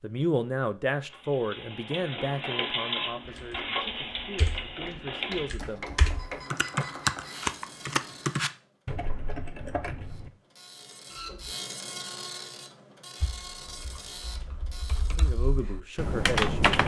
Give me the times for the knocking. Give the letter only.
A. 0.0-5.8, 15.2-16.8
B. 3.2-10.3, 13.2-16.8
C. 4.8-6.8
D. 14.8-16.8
C.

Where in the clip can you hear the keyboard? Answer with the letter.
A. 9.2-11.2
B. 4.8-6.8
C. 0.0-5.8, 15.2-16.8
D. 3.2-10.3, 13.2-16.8
D.